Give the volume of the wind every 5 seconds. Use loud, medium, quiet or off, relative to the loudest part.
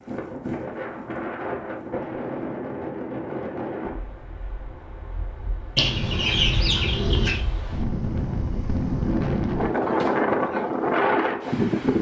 medium, medium, loud.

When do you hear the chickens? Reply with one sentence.
You can hear the chickens from 5.8 to 7.5 s.